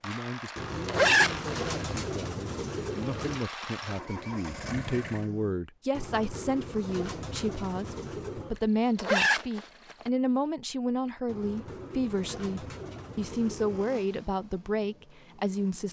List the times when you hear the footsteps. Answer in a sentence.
You can't hear the footsteps here.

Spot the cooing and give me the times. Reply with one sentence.
The cooing can be heard from 0.6 to 3.5 s, from 5.9 to 8.6 s and from 11.2 to 13.8 s.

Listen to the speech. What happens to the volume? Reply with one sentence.
The loudness of the speech goes up.